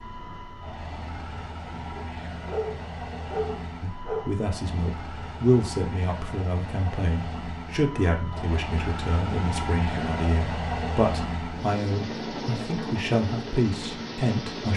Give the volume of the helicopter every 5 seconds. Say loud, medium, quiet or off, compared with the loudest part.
medium, loud, loud.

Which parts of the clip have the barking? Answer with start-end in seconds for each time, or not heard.
1.9-4.3.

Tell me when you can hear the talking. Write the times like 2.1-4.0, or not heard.
3.8-14.7.